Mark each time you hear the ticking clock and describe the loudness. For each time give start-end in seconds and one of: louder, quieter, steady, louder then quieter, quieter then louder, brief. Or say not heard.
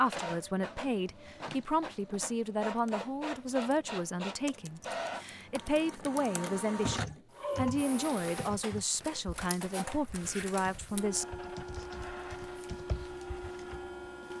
not heard.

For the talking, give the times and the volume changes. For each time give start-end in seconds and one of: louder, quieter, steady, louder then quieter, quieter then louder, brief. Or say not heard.
0.0-11.2 steady.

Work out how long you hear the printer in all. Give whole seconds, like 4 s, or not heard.
14 s.